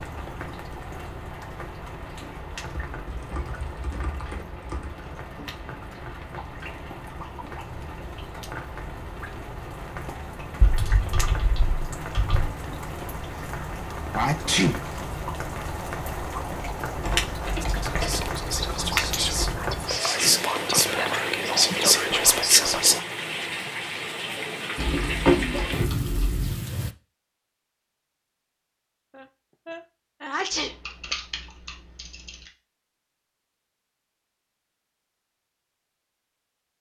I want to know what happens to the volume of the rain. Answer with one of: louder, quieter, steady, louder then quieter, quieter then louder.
louder.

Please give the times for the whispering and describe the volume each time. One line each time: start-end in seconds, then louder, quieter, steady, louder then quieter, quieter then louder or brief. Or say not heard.
17.6-23.0 louder.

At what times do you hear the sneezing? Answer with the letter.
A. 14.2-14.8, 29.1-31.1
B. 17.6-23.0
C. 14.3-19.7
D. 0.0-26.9
A.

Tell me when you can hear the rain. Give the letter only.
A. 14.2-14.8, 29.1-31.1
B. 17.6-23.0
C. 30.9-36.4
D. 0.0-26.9
D.